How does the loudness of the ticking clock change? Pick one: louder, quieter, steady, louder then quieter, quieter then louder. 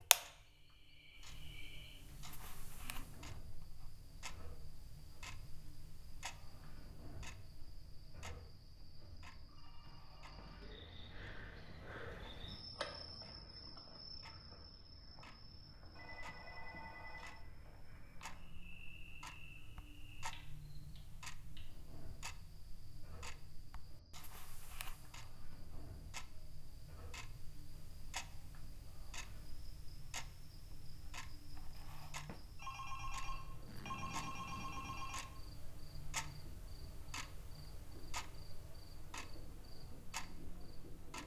quieter then louder.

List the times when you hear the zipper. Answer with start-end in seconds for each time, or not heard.
33.6-35.2.